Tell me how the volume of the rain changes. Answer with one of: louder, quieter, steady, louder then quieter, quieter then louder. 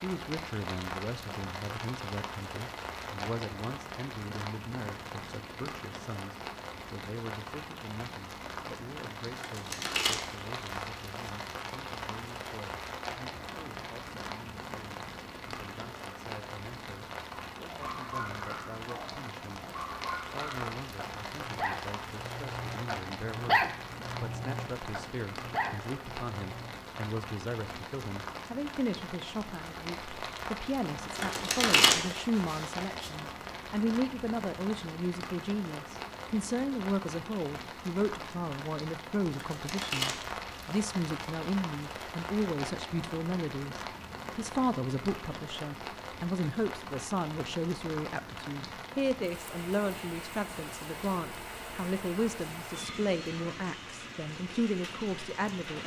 steady.